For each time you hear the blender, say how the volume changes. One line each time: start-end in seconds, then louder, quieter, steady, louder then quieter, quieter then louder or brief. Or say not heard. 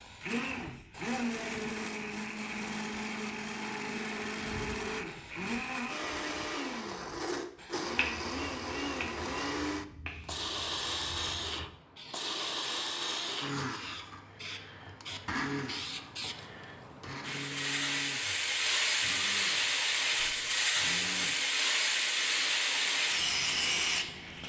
0.1-24.4 quieter.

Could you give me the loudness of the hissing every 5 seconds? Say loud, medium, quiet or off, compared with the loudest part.
quiet, quiet, quiet, loud, loud.